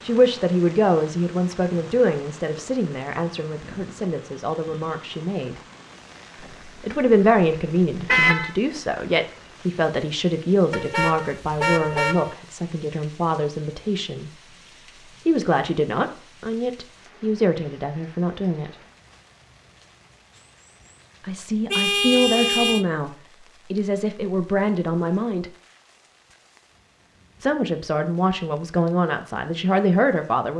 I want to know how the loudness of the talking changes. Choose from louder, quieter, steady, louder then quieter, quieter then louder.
steady.